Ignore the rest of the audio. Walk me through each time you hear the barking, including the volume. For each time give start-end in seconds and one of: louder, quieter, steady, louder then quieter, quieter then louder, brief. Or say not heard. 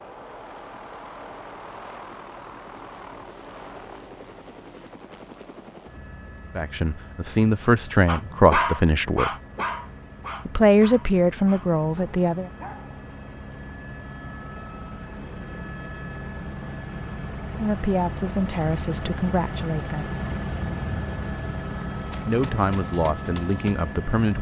8.1-13.0 quieter.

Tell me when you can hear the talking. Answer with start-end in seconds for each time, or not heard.
6.5-9.3, 10.4-12.5, 17.6-20.1, 22.2-24.3.